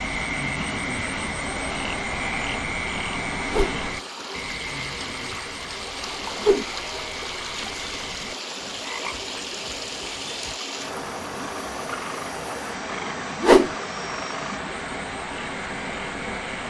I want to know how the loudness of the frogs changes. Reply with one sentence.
The volume of the frogs goes down.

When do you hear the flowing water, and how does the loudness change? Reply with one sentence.
The flowing water can be heard from 0.0 to 16.6 s, at a steady volume.